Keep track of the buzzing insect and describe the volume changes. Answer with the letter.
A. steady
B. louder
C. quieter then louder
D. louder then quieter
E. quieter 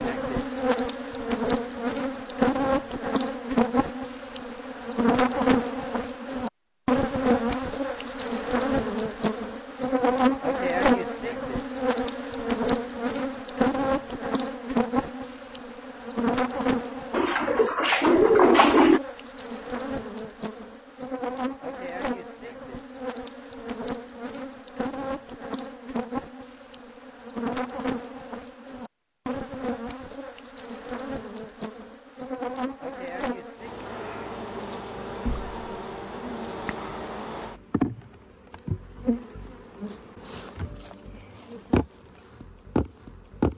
E.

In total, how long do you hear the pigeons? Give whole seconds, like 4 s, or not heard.
2 s.